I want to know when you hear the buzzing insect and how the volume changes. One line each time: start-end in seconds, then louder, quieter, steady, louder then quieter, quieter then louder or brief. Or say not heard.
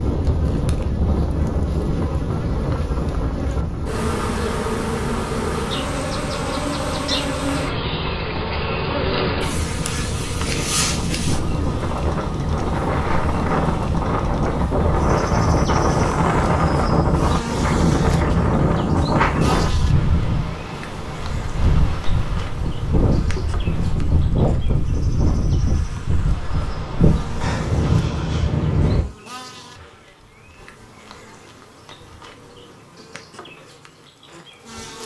0.0-35.0 quieter.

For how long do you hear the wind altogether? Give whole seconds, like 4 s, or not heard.
29 s.